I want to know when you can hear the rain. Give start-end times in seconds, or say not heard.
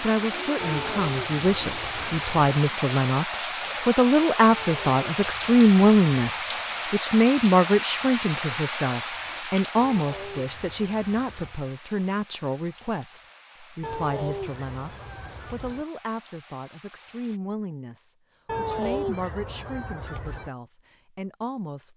0.0-17.4.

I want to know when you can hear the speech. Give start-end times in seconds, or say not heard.
0.0-21.9.